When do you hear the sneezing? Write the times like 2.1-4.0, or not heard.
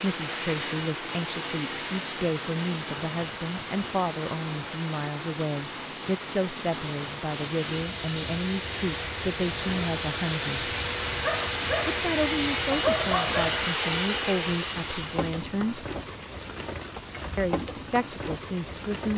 not heard.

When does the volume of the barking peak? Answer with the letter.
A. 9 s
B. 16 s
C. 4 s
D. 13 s
D.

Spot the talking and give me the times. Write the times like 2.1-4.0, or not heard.
0.0-10.7, 11.8-15.8, 17.4-19.1.